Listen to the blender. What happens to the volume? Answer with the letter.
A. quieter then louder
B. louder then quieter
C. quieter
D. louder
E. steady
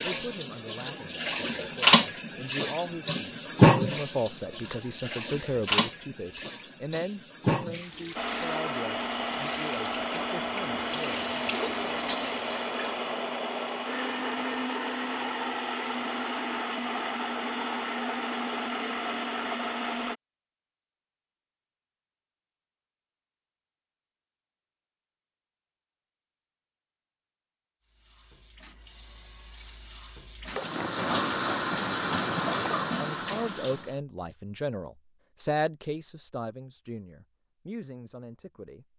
E.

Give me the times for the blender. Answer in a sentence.
You can hear the blender from 8.2 to 20.1 s.